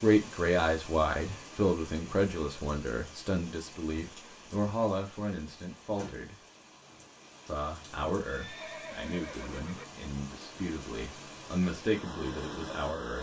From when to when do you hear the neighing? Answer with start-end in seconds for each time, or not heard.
8.2-9.8.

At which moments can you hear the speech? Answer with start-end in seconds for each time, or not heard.
0.0-6.3, 7.5-13.1.